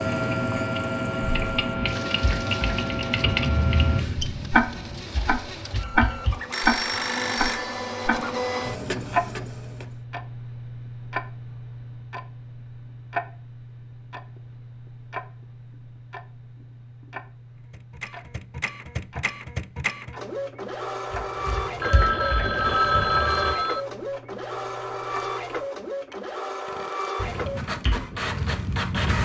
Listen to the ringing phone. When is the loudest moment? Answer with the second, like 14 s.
23 s.